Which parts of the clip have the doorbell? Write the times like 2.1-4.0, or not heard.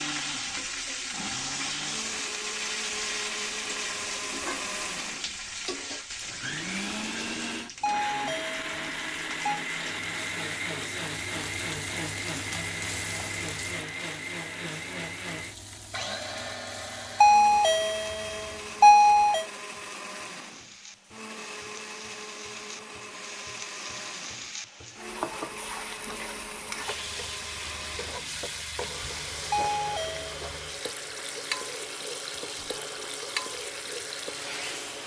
7.8-9.6, 17.2-19.4, 29.5-30.3.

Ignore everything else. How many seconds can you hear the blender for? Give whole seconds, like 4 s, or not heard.
35 s.